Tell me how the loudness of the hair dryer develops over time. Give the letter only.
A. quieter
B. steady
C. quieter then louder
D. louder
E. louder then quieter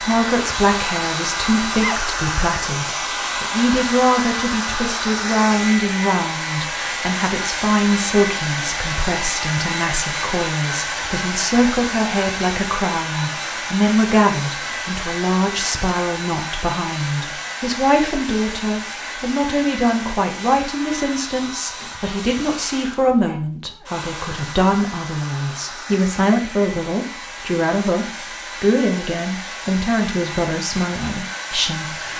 A.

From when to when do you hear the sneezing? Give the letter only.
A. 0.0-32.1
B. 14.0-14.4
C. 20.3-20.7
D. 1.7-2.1
D.